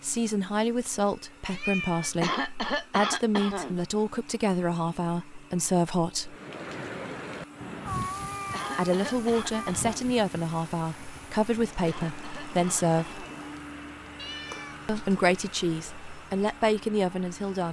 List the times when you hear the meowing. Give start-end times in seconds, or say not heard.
1.4-2.1, 7.8-9.8, 14.2-15.2.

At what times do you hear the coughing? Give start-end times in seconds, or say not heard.
2.2-3.8, 8.5-10.1, 11.8-13.2.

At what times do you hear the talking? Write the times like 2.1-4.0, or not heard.
0.0-6.3, 8.8-13.2, 14.8-17.6.